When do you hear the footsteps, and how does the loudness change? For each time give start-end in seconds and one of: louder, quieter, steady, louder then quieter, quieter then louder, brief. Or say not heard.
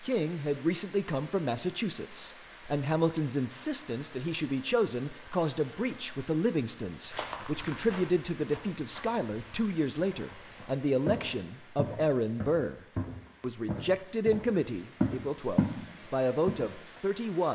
7.1-15.8 quieter then louder
16.4-17.0 brief.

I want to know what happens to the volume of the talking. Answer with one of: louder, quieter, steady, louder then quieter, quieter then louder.
steady.